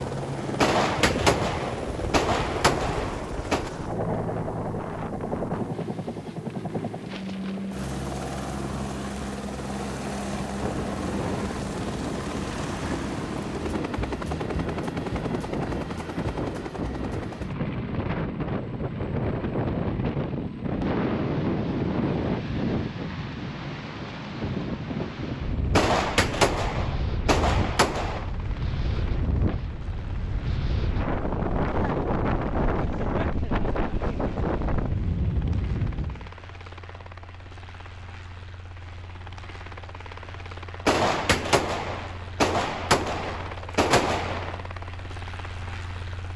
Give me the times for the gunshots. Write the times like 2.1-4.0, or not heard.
0.6-3.7, 25.8-28.3, 40.9-44.6.